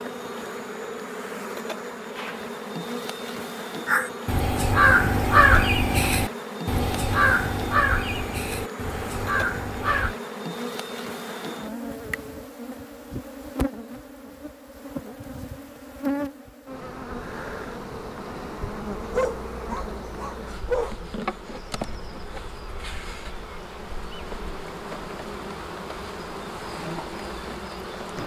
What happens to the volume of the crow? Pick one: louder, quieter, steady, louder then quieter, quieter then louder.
quieter.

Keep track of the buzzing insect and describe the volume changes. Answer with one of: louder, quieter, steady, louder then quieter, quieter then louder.
steady.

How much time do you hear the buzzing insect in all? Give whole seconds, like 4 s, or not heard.
28 s.